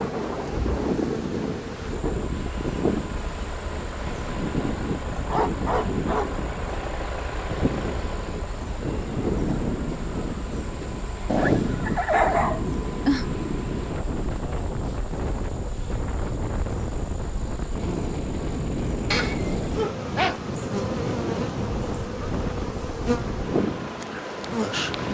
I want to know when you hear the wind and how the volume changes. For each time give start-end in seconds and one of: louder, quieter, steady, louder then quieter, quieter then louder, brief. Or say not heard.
0.0-25.1 steady.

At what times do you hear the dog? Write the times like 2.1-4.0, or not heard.
5.3-6.3, 11.2-13.2, 19.1-20.4.